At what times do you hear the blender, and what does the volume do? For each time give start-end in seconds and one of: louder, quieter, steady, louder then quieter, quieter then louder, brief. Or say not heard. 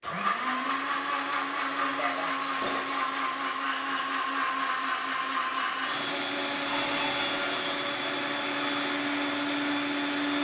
0.0-10.3 steady.